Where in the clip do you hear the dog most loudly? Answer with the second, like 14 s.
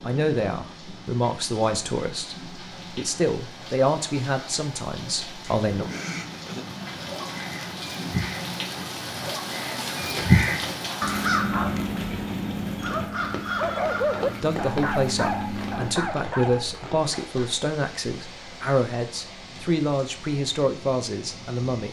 14 s.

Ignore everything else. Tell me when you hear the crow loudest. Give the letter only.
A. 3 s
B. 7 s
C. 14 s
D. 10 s
D.